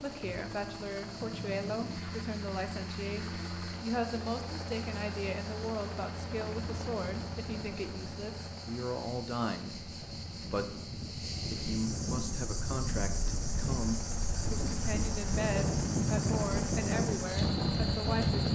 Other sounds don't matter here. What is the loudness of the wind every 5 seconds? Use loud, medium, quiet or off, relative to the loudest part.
off, quiet, medium, loud.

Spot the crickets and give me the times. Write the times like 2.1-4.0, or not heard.
0.0-18.5.